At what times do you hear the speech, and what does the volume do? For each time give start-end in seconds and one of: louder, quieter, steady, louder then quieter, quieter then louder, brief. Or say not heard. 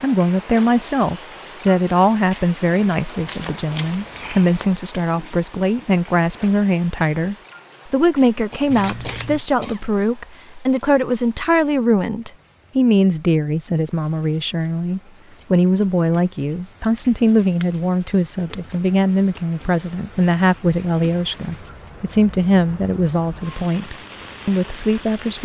0.0-25.3 steady.